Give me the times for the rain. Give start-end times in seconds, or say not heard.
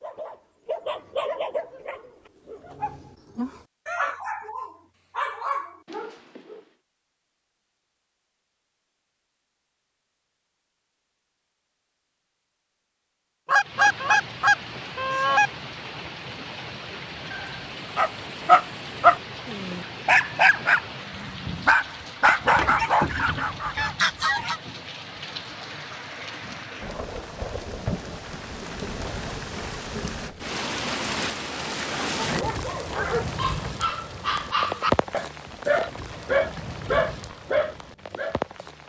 13.6-38.8.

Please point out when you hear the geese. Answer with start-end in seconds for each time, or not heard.
13.4-15.5, 22.2-24.6.